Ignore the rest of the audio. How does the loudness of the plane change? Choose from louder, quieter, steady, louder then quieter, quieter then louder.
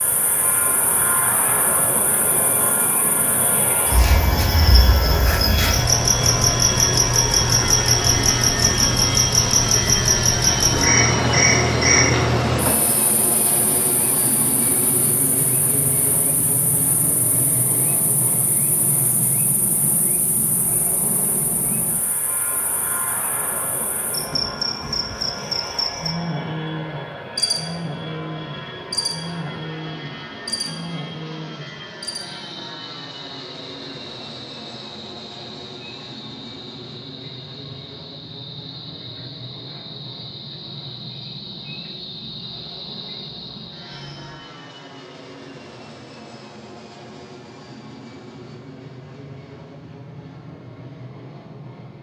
quieter.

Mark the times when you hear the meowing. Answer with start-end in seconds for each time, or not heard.
not heard.